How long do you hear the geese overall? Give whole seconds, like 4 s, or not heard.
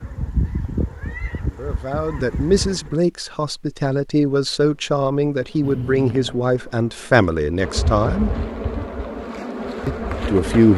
3 s.